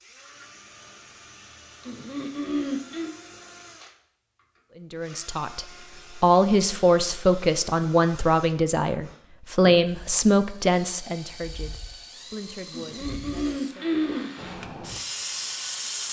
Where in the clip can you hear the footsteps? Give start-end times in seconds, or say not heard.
not heard.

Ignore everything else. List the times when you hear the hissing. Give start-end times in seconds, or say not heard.
14.3-16.0.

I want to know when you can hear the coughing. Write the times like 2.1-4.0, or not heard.
1.8-3.1, 12.7-14.3.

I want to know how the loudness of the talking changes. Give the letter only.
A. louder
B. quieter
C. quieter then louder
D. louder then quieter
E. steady
B.